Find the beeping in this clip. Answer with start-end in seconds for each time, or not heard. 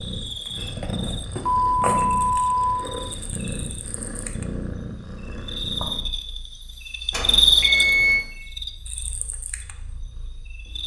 1.4-2.9, 7.1-8.2.